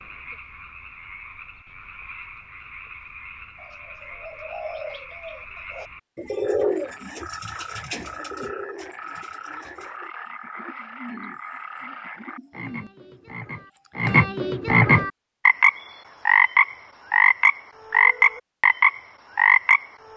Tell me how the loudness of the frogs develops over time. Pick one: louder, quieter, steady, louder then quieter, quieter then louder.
louder.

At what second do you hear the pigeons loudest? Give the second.
7 s.